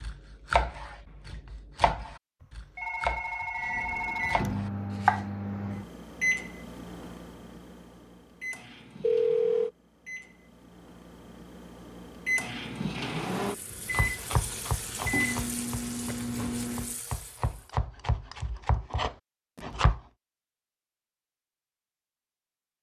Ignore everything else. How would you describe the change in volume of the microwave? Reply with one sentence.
The volume of the microwave goes down, then up.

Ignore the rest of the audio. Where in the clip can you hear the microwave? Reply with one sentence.
You can hear the microwave from 3.5 to 16.9 s.